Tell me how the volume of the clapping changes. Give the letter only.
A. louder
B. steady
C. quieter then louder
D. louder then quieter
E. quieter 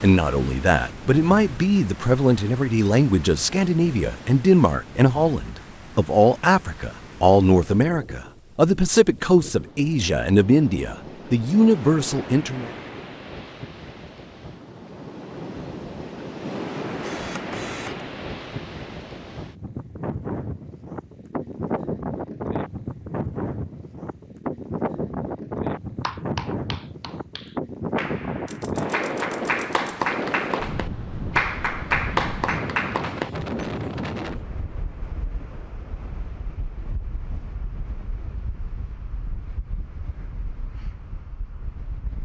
A.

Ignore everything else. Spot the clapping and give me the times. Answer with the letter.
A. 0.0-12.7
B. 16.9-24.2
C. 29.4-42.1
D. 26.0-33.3
D.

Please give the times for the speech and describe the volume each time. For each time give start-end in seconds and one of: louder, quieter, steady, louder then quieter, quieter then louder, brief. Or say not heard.
0.0-12.7 steady.